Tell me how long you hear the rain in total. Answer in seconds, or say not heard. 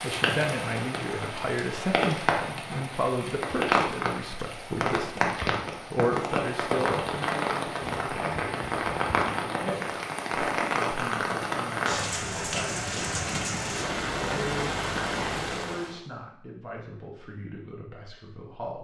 16 s.